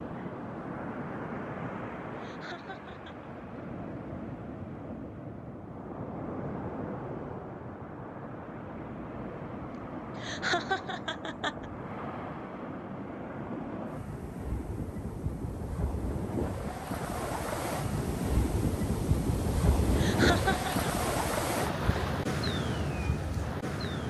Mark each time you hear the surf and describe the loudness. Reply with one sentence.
The surf can be heard from 0.0 to 24.0 s, getting louder.